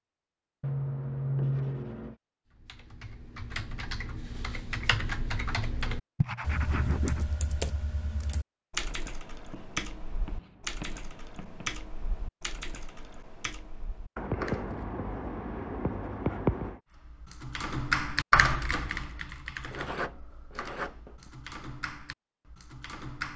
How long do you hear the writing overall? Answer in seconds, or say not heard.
9 s.